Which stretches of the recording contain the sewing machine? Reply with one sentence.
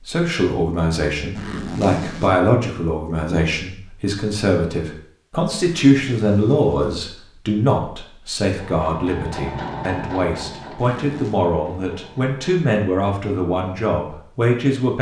You can hear the sewing machine from 8.6 to 12.7 s.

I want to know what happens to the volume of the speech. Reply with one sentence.
The loudness of the speech stays about the same.